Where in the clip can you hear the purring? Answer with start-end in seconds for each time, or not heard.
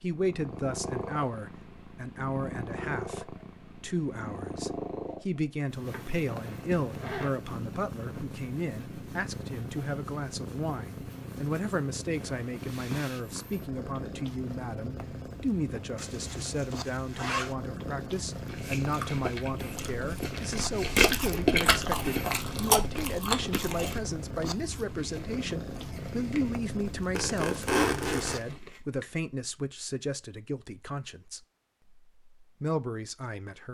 0.1-28.6.